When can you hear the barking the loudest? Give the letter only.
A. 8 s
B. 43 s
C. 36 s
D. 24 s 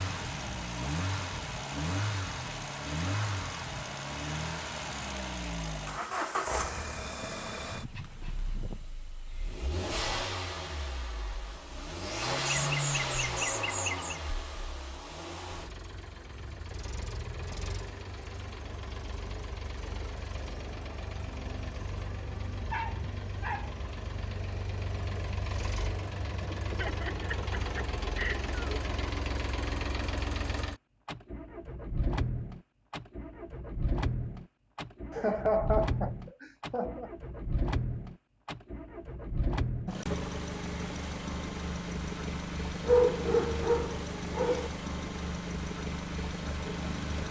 B.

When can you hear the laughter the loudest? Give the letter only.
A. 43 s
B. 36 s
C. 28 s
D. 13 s
B.